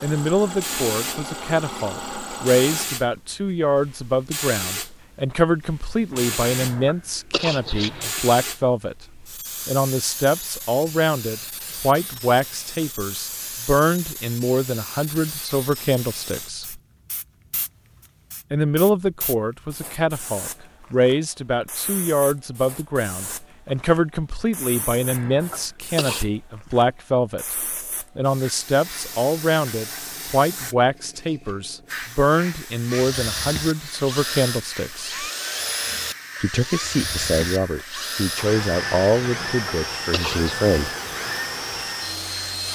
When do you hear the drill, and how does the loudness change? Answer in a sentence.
The drill can be heard briefly from 0.0 to 2.9 s; and from 32.9 to 42.7 s, at a steady volume.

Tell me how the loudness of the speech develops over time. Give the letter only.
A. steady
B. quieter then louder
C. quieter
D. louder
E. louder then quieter
A.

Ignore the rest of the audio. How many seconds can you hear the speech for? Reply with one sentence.
The speech can be heard for 38 seconds in total.